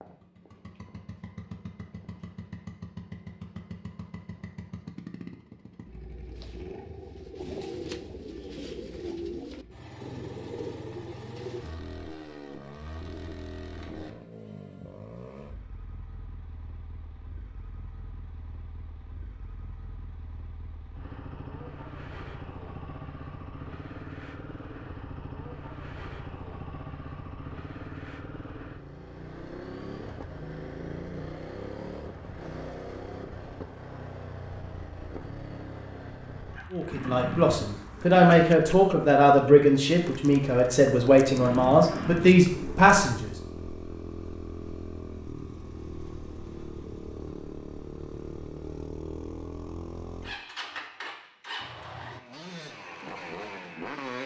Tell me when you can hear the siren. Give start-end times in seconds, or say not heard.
not heard.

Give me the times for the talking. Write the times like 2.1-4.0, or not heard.
36.7-43.3.